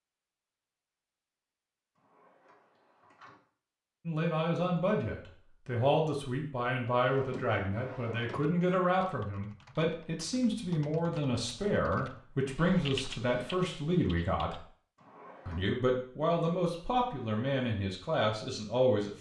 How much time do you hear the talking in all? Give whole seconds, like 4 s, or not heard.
14 s.